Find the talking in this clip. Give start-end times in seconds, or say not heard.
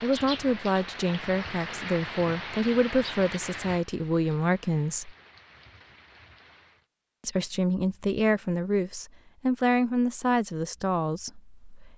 0.0-5.2, 7.2-11.9.